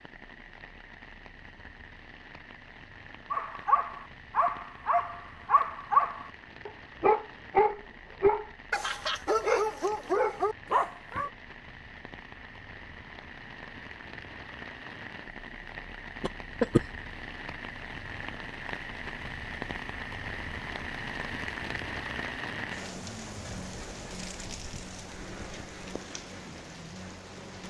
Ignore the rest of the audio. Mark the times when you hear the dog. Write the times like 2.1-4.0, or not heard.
3.3-11.3.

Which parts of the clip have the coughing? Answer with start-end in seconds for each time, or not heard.
16.2-16.9.